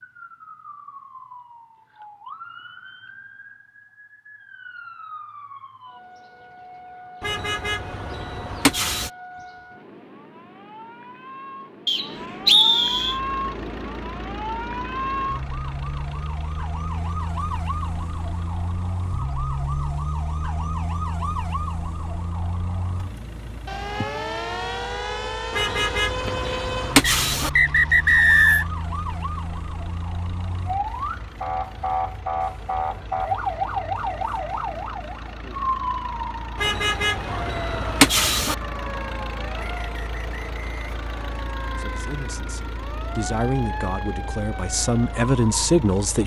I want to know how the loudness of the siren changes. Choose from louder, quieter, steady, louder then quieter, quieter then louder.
louder then quieter.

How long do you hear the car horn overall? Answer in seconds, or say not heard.
6 s.